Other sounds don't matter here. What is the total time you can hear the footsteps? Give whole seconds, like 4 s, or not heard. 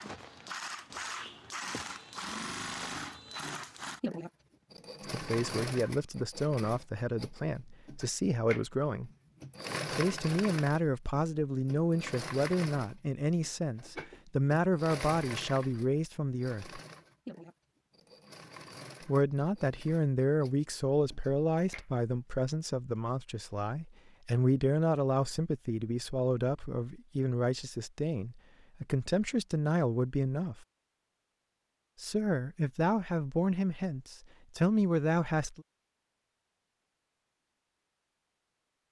3 s.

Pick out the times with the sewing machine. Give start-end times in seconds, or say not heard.
0.0-21.9.